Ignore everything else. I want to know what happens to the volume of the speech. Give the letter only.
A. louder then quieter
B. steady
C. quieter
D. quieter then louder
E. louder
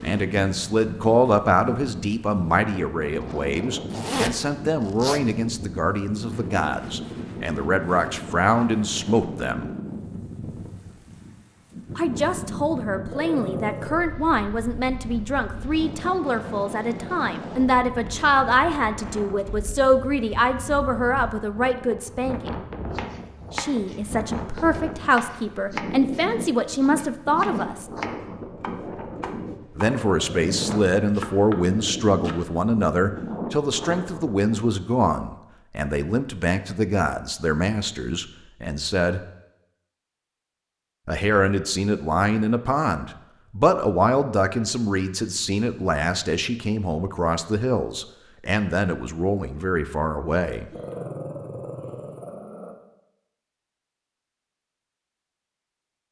B.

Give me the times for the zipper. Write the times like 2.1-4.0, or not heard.
3.9-5.2.